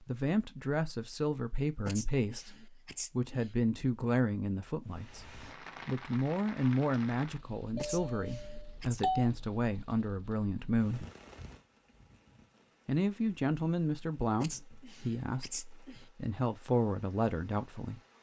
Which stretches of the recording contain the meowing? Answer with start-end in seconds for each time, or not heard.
not heard.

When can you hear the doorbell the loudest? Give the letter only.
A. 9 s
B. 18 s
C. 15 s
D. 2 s
A.